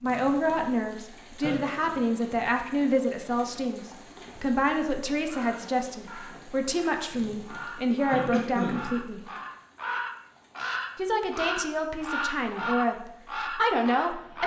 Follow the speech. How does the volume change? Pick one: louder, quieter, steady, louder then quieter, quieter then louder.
steady.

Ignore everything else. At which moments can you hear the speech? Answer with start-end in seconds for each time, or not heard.
0.0-9.2, 10.9-14.4.